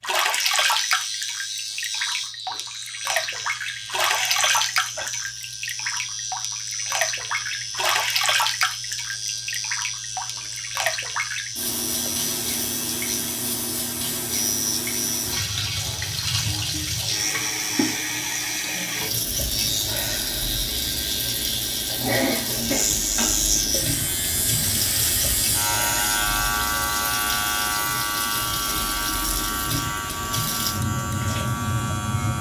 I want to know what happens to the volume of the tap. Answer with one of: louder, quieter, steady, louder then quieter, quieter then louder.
steady.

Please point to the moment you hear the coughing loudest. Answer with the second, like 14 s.
22 s.